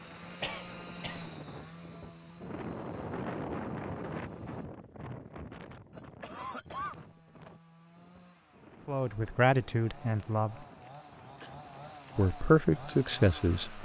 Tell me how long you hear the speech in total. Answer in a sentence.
The speech can be heard for 3 seconds in total.